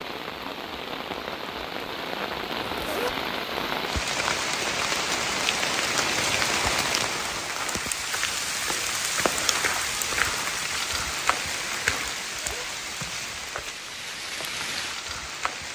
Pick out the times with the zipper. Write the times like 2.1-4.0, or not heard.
2.5-3.1, 12.2-12.7.